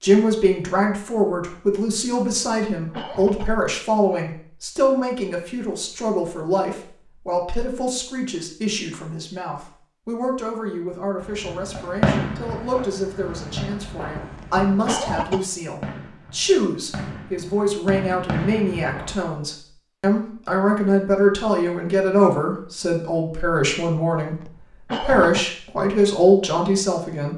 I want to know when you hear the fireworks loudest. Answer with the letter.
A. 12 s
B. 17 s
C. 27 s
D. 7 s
A.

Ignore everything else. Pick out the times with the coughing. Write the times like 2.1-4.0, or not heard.
2.5-3.5, 14.4-15.4, 24.4-25.5.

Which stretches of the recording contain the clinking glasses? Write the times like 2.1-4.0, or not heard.
not heard.